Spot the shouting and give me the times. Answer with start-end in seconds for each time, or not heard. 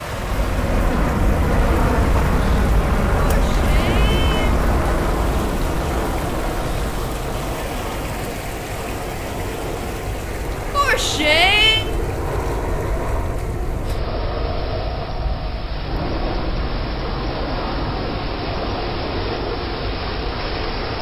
3.2-4.5, 10.7-11.8.